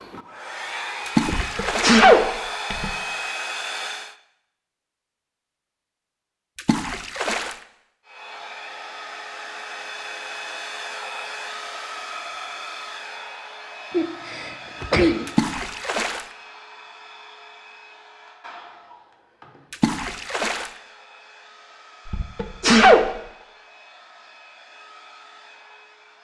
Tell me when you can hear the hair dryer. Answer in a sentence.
The hair dryer can be heard from 0.0 to 4.2 s and from 8.1 to 26.2 s.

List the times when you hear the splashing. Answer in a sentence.
You can hear the splashing from 1.1 to 2.0 s, from 6.5 to 7.5 s, from 15.2 to 16.2 s and from 19.7 to 20.7 s.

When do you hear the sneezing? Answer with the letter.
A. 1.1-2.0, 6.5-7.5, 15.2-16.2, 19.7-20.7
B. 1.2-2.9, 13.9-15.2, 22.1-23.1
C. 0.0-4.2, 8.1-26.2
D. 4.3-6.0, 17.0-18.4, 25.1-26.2
B.